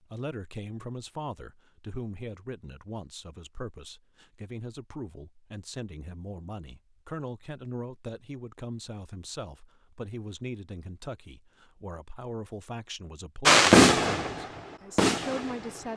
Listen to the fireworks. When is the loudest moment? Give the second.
14 s.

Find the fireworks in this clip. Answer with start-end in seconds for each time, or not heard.
13.4-15.9.